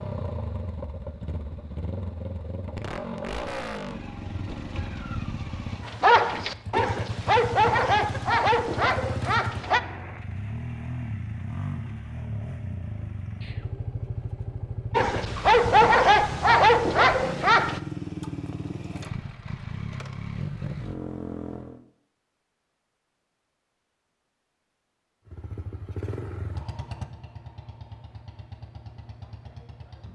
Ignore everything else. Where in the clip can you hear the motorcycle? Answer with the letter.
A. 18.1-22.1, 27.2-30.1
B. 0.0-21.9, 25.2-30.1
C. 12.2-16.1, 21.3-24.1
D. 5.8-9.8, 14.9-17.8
B.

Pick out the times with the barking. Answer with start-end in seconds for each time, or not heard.
5.8-9.8, 14.9-17.8.